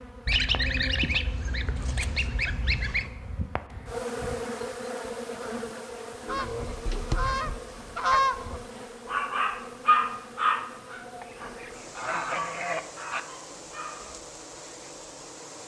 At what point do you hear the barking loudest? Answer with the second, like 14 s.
10 s.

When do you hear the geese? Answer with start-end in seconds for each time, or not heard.
0.2-3.1, 6.2-8.7, 11.2-13.2.